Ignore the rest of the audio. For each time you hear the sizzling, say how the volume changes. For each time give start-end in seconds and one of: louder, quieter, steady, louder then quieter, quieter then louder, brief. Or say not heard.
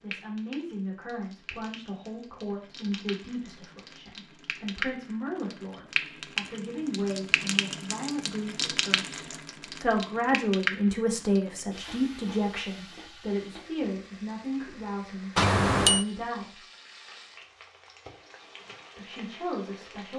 0.0-20.1 louder then quieter.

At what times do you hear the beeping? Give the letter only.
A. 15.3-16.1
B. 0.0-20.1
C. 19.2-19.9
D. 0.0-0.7
A.